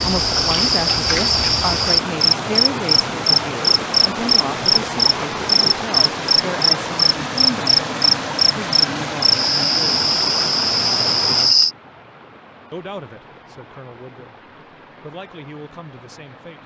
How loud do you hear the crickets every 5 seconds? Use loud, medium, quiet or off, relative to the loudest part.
loud, loud, loud, off.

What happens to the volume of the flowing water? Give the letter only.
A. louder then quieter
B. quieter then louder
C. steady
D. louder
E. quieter
E.